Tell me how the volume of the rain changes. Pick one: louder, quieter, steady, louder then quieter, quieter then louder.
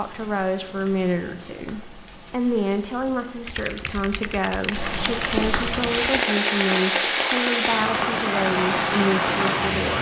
louder.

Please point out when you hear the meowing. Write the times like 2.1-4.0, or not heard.
not heard.